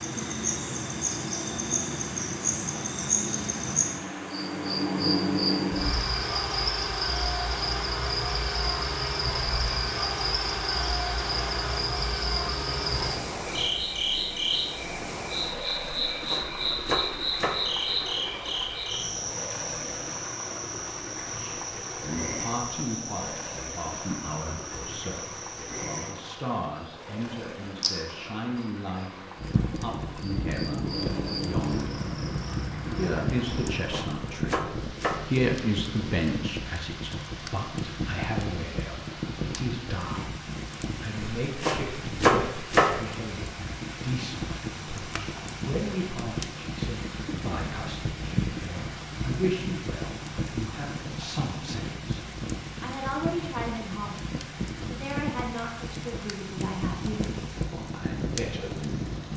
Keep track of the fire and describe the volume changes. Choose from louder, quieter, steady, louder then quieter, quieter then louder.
steady.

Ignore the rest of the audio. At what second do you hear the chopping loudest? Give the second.
42 s.